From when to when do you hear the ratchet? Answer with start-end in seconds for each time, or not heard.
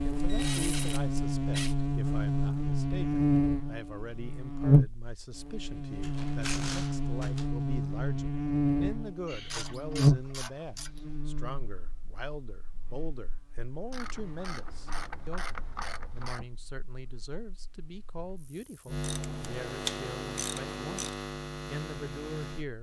0.2-1.8, 6.0-7.5, 9.2-11.2, 13.9-16.4, 19.0-21.1.